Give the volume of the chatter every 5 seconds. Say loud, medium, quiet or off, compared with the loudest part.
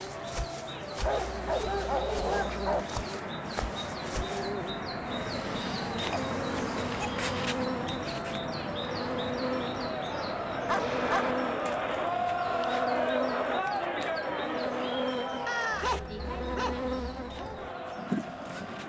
medium, medium, loud, medium.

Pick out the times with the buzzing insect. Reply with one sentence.
You can hear the buzzing insect from 0.0 to 18.8 s.